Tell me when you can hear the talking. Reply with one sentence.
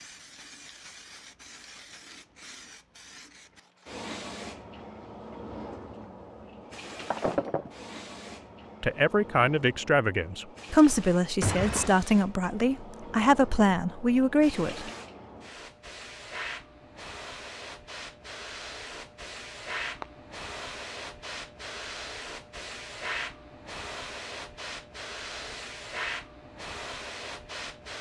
You can hear the talking from 8.8 to 14.9 s.